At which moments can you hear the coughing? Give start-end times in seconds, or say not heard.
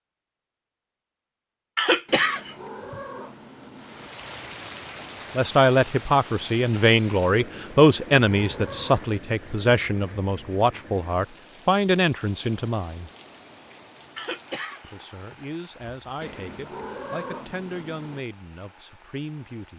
1.8-3.0, 14.2-15.4.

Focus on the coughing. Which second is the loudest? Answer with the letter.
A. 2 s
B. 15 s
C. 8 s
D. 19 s
A.